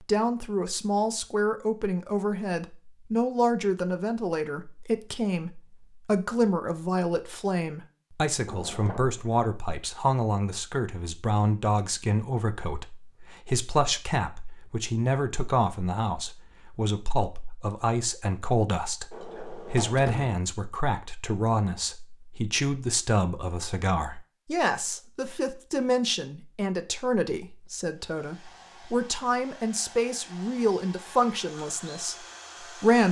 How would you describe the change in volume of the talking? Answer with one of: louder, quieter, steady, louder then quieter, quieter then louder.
steady.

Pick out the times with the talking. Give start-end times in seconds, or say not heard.
0.0-33.0.